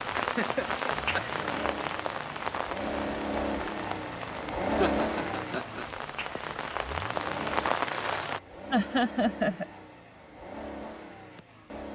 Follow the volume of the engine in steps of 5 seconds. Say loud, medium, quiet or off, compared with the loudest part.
loud, medium, medium.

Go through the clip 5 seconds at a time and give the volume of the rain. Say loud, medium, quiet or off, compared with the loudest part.
loud, loud, off.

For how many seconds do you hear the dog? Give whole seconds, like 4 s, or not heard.
not heard.